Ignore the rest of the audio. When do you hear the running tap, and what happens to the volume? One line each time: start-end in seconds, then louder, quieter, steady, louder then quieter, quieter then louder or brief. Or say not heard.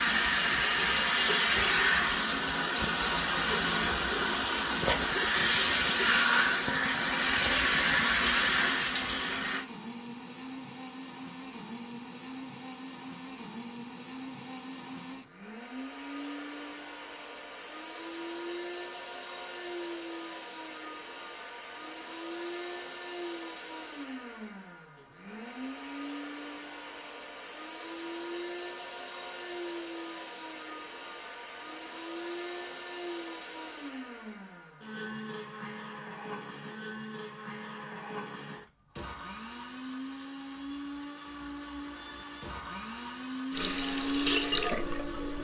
0.0-9.7 steady
43.5-45.4 brief.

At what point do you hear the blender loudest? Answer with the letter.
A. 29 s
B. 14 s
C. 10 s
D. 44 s
D.